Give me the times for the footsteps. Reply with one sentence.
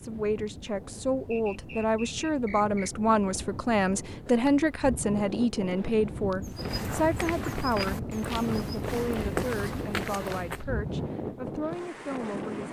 You can hear the footsteps from 6.4 to 10.6 s.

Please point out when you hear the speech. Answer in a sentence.
You can hear the speech from 0.0 to 12.6 s.